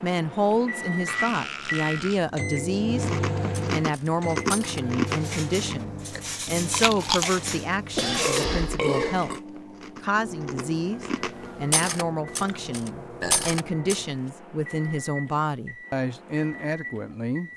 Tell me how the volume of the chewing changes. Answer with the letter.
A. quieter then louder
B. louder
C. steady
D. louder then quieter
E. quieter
A.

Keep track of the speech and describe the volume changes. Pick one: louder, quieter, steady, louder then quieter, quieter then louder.
steady.